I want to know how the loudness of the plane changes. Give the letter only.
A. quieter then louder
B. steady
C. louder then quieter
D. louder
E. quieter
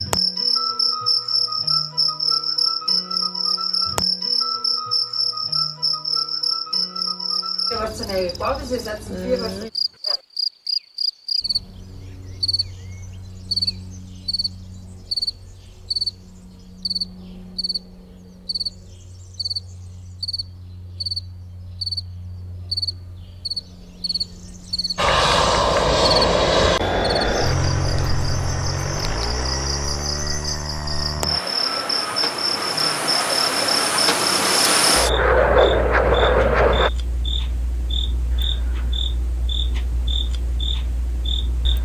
A.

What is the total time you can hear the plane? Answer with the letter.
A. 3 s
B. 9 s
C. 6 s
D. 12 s
D.